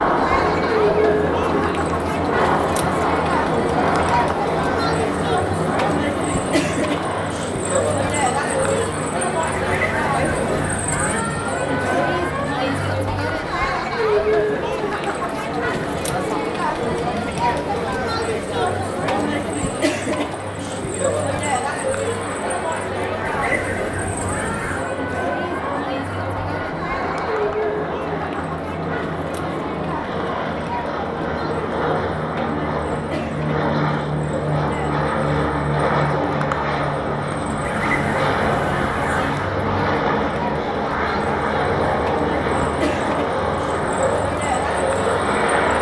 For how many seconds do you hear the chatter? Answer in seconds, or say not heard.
46 s.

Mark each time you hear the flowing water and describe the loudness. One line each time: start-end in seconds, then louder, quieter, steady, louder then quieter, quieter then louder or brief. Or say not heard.
not heard.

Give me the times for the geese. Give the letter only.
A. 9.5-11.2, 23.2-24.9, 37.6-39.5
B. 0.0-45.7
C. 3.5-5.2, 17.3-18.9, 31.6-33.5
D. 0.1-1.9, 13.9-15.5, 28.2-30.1
A.